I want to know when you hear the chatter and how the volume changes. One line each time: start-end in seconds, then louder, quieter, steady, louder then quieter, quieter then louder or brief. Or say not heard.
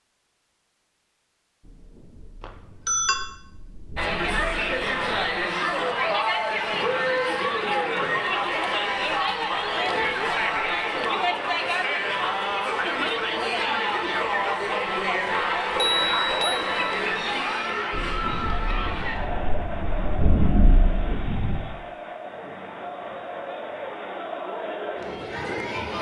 4.0-25.9 quieter.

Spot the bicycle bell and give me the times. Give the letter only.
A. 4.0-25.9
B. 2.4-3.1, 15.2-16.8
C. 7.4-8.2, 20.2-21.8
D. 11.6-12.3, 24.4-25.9
B.